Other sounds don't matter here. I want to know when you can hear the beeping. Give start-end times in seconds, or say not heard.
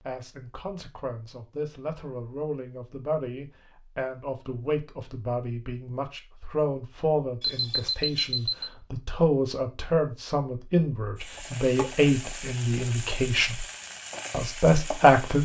7.4-8.7.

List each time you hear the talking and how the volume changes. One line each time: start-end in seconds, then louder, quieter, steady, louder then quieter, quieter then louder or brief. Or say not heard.
0.0-13.7 louder
14.3-15.3 brief.